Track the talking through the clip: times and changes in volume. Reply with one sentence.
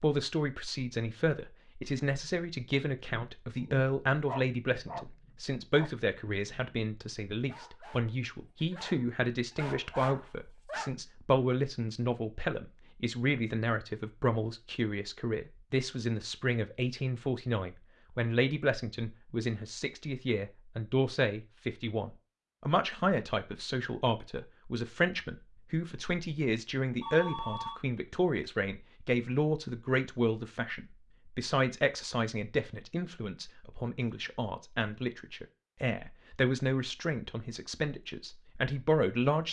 The talking can be heard from 0.0 to 39.4 s, at a steady volume.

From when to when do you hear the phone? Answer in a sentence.
The phone can be heard from 27.0 to 27.8 s.